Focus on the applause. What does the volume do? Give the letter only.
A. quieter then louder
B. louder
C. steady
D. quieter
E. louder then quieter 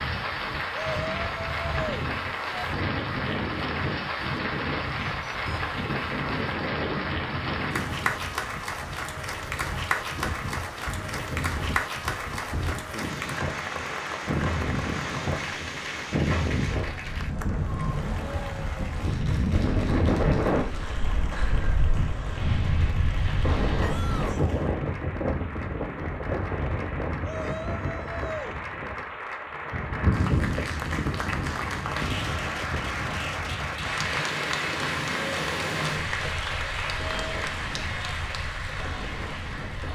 A.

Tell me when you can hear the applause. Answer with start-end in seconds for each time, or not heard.
0.0-39.8.